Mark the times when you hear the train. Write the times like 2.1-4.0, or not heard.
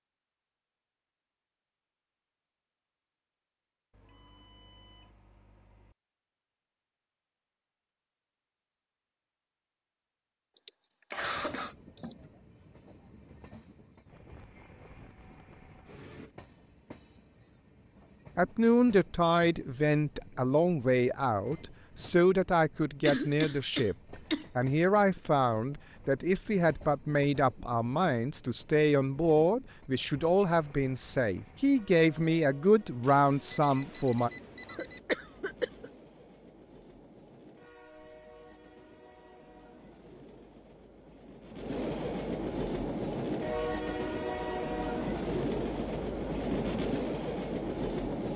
11.2-48.3.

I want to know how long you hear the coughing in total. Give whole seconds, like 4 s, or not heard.
4 s.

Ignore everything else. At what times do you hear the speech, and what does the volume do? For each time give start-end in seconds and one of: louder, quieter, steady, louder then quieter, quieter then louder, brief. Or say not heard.
18.4-34.3 steady.